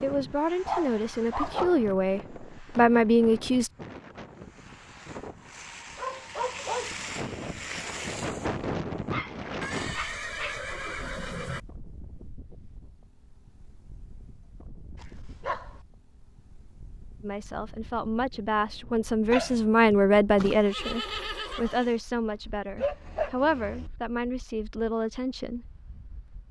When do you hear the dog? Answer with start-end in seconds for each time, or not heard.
0.7-1.9, 6.0-7.0, 9.1-10.6, 15.0-15.8, 19.2-20.0, 22.8-23.9.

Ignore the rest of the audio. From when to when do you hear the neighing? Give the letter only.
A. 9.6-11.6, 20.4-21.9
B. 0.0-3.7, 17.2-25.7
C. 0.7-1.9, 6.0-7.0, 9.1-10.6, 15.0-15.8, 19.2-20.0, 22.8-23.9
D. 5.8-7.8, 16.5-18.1
A.